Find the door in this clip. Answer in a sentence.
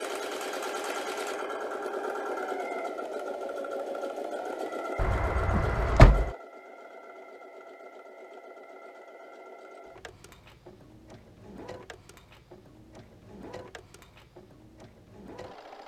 The door can be heard from 5.0 to 6.3 s.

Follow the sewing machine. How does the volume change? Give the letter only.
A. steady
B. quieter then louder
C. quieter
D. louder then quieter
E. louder
C.